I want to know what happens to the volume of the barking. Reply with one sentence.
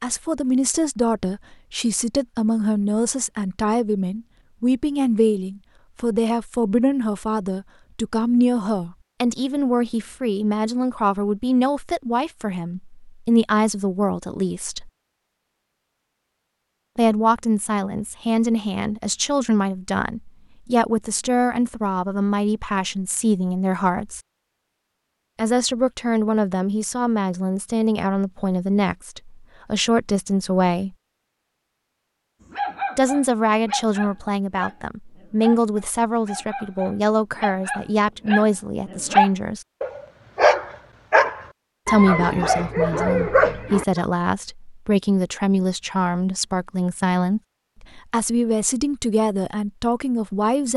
The volume of the barking goes up.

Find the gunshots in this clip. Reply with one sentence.
The gunshots can't be heard in this clip.